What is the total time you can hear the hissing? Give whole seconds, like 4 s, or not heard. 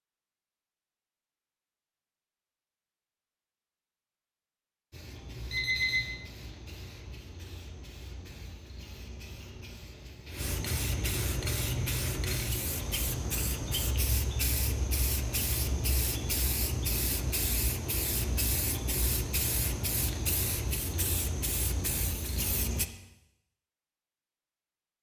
18 s.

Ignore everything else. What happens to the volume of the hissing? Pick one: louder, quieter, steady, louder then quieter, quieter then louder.
louder.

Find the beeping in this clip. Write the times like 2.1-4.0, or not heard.
5.2-6.2.